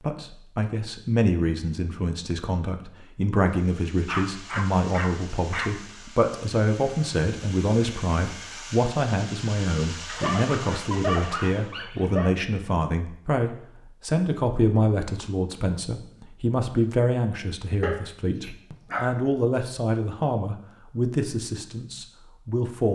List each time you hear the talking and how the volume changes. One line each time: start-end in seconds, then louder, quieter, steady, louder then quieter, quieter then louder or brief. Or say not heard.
0.0-22.8 steady.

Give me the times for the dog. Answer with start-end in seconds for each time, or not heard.
4.0-5.8, 10.1-12.3, 17.8-19.2.